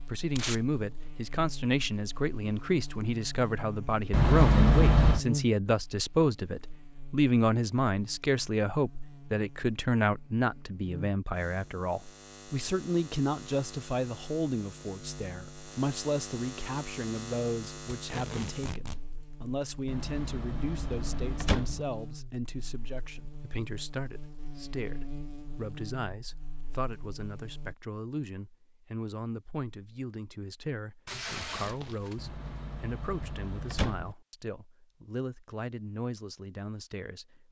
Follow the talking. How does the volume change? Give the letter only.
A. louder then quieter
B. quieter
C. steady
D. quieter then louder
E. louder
B.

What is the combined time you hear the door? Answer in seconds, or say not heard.
5 s.